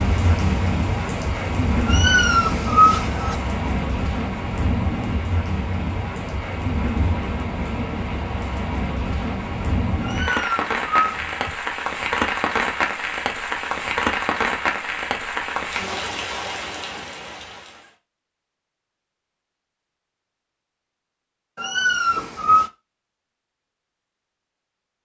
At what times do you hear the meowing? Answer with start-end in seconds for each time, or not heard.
1.9-3.4, 10.0-11.5, 21.6-22.7.